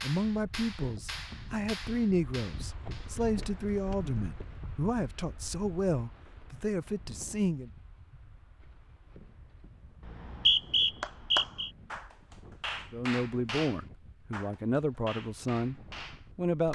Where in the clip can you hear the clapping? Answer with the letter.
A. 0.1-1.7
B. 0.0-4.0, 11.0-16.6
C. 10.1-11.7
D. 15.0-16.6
B.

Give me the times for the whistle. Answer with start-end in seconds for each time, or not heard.
10.1-11.7.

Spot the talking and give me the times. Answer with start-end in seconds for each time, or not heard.
0.0-7.7, 12.9-16.6.